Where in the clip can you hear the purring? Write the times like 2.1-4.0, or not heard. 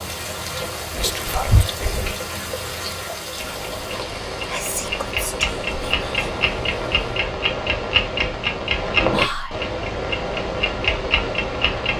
not heard.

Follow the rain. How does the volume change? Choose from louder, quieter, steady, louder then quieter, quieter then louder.
quieter.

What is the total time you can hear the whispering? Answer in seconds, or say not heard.
4 s.